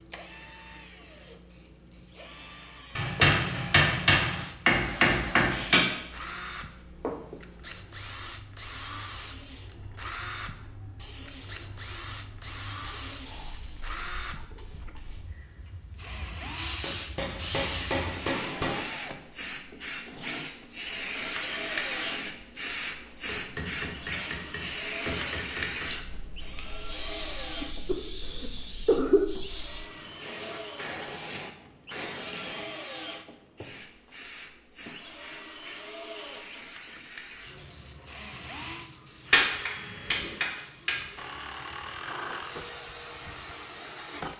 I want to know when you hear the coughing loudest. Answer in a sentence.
The loudest moment of the coughing is at 29 seconds.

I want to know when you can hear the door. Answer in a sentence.
The door can't be heard in this clip.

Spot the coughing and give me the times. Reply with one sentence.
The coughing can be heard from 27.6 to 29.2 s.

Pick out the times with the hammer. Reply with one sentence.
The hammer can be heard from 3.0 to 5.8 s, from 16.8 to 18.8 s, from 23.2 to 25.9 s and from 39.3 to 41.0 s.